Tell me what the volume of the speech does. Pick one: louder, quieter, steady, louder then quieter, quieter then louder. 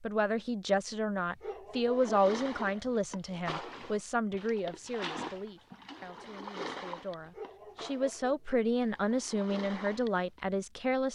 quieter then louder.